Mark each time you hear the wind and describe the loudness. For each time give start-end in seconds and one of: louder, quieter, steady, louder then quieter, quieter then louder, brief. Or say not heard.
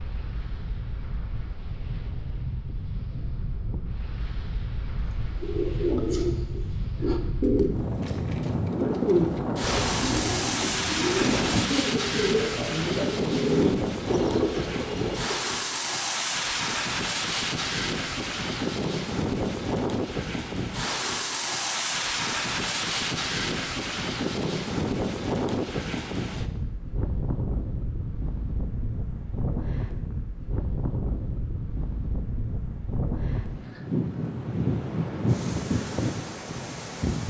0.0-37.2 louder.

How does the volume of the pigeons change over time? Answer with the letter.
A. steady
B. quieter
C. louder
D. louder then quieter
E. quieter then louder
A.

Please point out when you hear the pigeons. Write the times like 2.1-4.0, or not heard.
5.3-15.4.